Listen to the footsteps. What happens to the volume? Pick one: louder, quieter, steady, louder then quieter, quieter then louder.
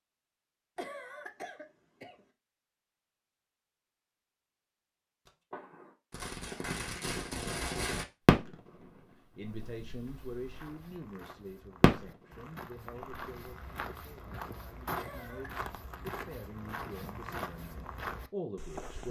louder.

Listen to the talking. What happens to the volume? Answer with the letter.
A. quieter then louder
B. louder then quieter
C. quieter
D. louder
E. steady
A.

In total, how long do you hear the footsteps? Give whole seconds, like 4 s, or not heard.
9 s.